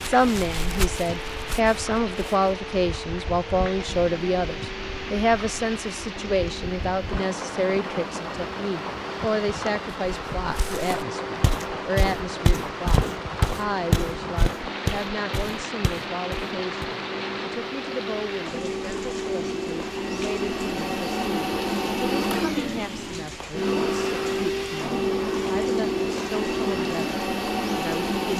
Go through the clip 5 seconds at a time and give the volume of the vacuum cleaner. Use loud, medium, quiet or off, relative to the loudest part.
quiet, quiet, quiet, medium, loud, loud.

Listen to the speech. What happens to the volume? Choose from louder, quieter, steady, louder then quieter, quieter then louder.
quieter.